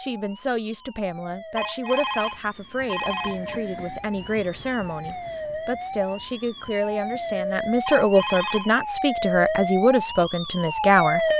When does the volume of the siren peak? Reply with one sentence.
The volume of the siren peaks at 11 seconds.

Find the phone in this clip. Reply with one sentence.
The phone can be heard from 1.6 to 3.6 s and from 7.8 to 9.2 s.